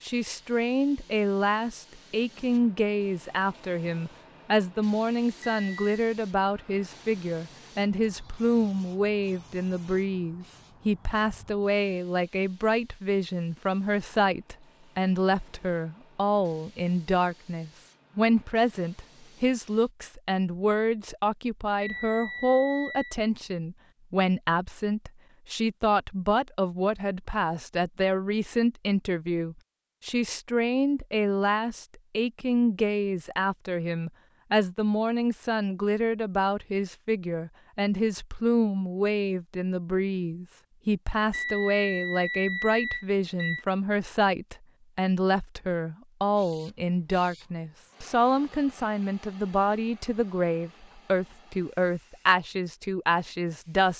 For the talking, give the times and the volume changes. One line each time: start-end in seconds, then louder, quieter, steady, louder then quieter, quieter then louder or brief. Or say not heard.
0.0-53.9 steady.